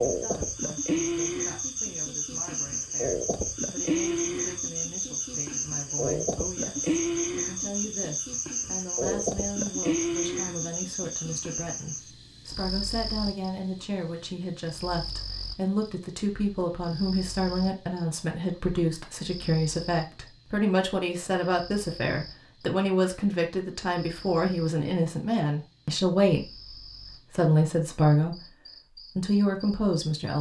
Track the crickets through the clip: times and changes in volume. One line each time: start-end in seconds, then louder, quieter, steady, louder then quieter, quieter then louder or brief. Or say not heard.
0.0-30.3 quieter.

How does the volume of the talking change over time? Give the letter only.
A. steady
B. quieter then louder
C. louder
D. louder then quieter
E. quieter
C.